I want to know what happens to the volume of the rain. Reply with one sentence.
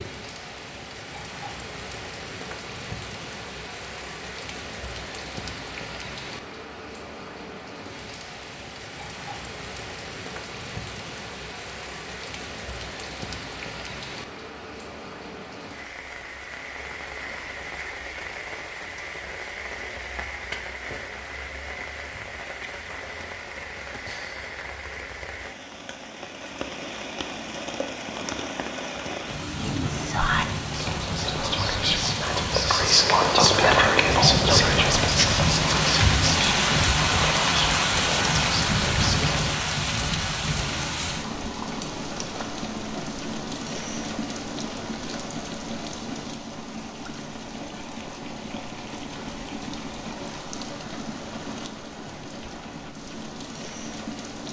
The loudness of the rain goes up, then down.